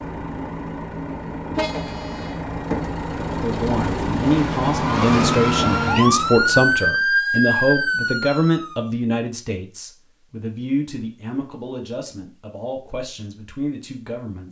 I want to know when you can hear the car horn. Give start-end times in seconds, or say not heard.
1.6-2.4.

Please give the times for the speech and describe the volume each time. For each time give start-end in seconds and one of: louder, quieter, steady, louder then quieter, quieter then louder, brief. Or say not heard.
3.4-14.4 quieter.